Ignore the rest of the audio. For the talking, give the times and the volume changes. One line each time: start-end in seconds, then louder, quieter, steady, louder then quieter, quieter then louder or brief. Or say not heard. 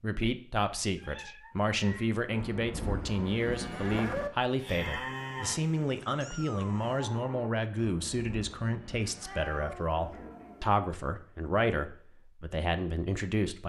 0.0-13.6 steady.